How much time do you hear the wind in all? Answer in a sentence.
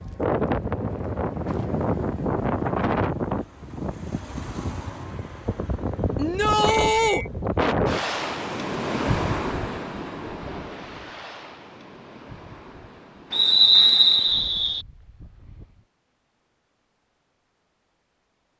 The wind can be heard for 16 seconds in total.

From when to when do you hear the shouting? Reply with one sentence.
The shouting can be heard from 6.2 to 7.2 s.